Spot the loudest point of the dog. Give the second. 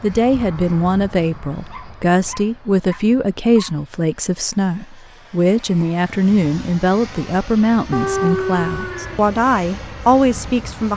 8 s.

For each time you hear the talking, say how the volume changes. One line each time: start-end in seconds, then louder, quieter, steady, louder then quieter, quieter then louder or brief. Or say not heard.
0.0-10.9 steady.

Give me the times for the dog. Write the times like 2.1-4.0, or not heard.
1.5-3.8, 7.9-9.2.